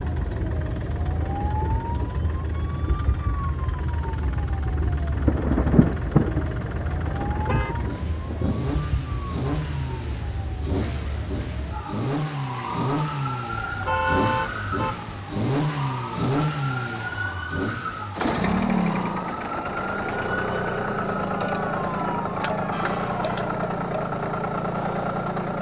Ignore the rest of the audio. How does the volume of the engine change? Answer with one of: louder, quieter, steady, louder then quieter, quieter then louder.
louder.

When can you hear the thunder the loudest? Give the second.
6 s.